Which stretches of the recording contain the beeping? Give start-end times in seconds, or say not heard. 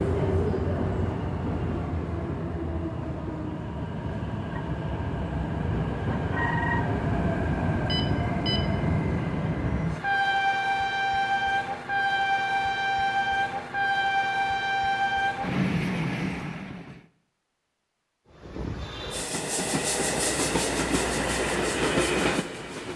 7.8-8.7.